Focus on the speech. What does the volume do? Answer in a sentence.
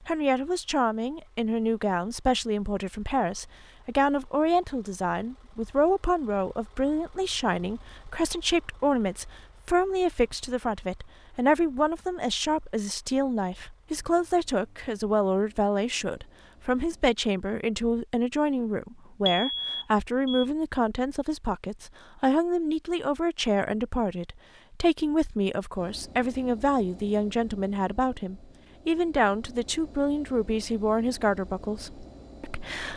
The volume of the speech stays about the same.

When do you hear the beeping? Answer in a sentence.
You can hear the beeping from 19.2 to 20.4 s.